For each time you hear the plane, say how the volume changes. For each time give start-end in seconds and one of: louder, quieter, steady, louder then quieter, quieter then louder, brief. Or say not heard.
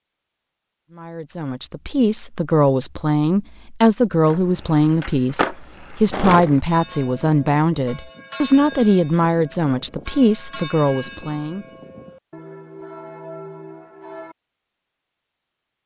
not heard.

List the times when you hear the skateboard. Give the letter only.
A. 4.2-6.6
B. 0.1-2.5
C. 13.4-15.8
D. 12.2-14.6
A.